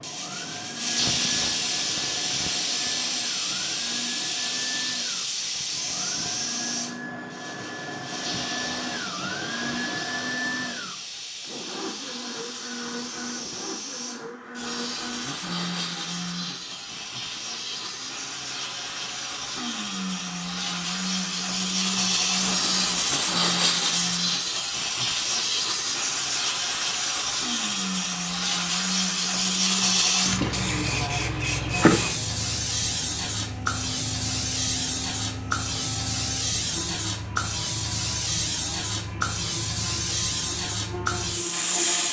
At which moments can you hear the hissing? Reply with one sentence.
You can hear the hissing from 0.0 to 42.0 s.